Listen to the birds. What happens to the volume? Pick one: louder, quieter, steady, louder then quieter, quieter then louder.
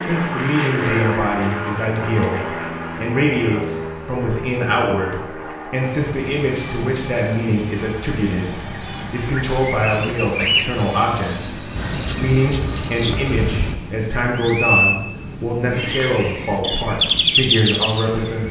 louder.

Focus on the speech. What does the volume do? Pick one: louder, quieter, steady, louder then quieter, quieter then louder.
steady.